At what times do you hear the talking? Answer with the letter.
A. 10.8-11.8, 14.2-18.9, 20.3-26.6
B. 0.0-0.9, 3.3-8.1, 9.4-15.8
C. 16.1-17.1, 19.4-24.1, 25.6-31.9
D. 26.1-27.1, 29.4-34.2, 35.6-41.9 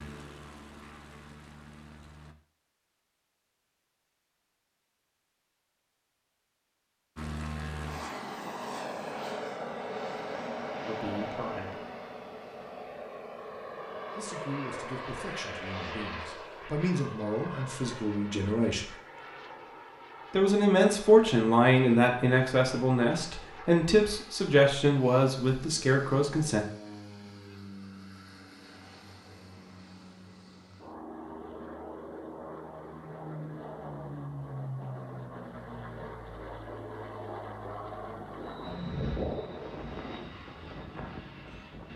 A.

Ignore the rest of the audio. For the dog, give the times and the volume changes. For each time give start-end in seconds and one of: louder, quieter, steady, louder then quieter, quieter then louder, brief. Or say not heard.
not heard.